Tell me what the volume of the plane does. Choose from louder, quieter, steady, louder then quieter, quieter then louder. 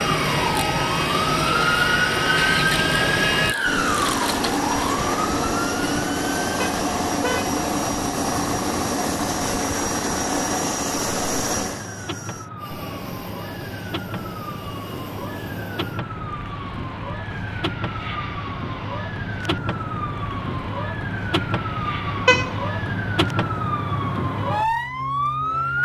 quieter.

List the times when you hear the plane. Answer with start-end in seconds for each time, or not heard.
0.0-25.7.